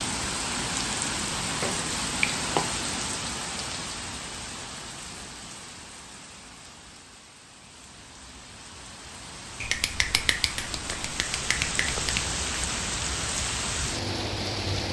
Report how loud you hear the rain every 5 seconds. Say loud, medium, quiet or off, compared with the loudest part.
loud, quiet, loud.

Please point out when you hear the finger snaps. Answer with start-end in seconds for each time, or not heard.
1.6-2.8, 9.6-12.2.